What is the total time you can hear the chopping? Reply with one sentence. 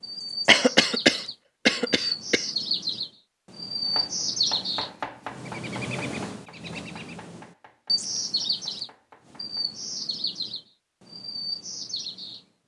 The chopping can be heard for 6 seconds in total.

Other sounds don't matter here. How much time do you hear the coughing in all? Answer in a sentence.
The coughing can be heard for 2 seconds in total.